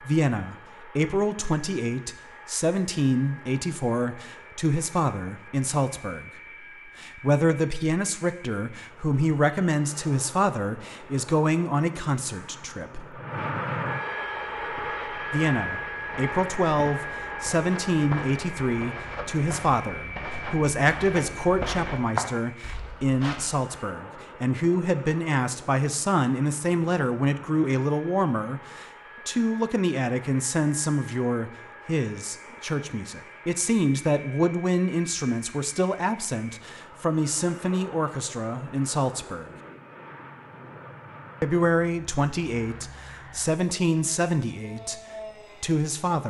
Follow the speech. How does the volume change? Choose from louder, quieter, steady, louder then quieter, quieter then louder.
steady.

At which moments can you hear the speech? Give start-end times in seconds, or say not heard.
0.0-13.1, 15.3-39.5, 41.4-46.2.